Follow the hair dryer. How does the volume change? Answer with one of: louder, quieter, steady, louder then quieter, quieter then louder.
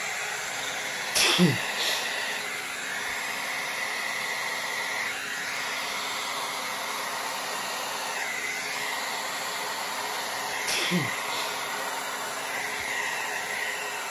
steady.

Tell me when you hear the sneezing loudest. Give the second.
1 s.